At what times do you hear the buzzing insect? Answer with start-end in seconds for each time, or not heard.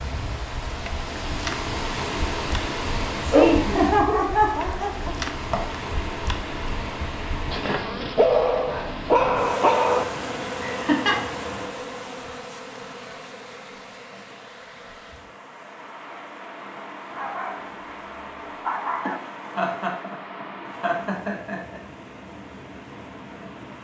0.0-23.7.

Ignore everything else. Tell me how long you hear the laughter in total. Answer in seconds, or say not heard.
6 s.